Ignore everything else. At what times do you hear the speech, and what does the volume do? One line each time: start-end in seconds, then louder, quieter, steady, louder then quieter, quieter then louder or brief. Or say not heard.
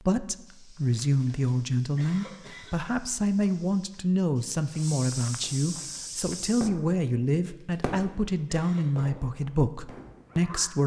0.0-10.8 steady.